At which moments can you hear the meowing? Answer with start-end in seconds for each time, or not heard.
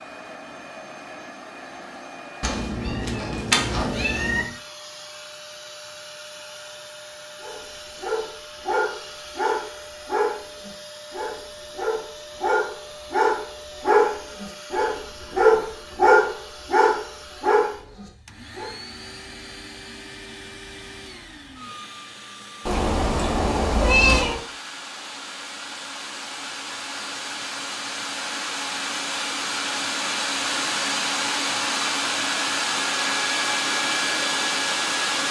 2.4-4.5, 22.6-24.4.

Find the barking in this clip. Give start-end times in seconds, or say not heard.
7.4-18.7.